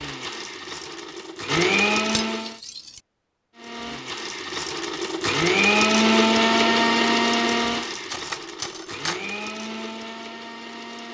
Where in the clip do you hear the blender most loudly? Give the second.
6 s.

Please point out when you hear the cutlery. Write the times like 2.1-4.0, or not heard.
2.1-3.0, 8.1-9.2.